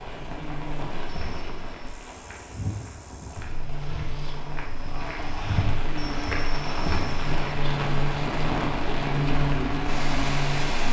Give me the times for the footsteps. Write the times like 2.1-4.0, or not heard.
1.1-7.5.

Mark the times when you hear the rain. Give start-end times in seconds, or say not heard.
0.0-10.8.